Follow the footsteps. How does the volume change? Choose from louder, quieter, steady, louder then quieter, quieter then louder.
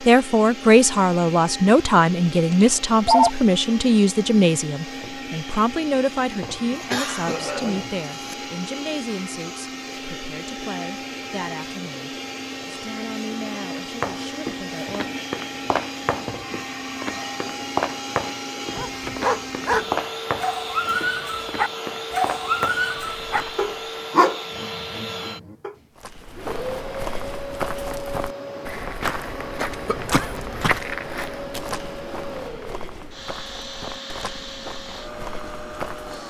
quieter.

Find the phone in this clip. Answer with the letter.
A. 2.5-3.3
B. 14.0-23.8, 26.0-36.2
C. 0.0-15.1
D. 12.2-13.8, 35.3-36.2
A.